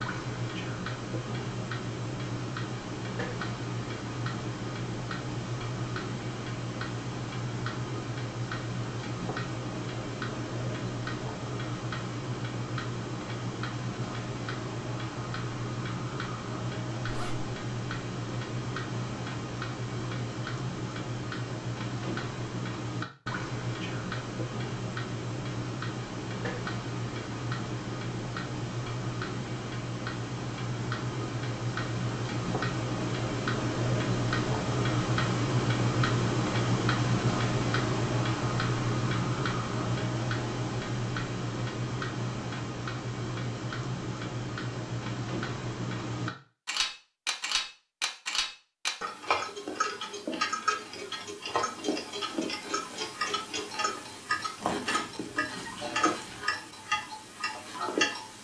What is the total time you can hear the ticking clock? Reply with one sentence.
You can hear the ticking clock for 58 seconds altogether.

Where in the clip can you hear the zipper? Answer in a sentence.
The zipper can be heard from 17.1 to 17.5 s and from 54.6 to 56.5 s.